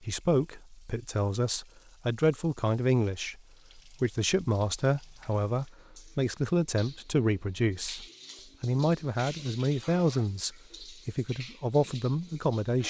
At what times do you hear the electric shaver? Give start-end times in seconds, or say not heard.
not heard.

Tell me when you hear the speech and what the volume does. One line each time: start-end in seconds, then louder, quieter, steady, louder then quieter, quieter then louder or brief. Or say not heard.
0.0-12.8 steady.